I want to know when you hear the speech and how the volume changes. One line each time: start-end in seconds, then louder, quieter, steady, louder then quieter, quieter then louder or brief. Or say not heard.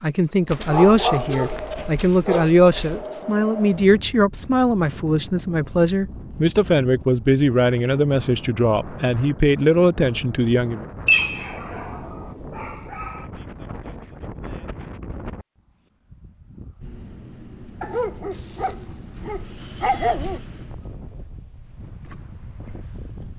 0.0-10.8 steady.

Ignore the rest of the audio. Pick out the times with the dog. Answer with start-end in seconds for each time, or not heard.
0.5-3.0, 11.1-13.2, 17.8-20.4.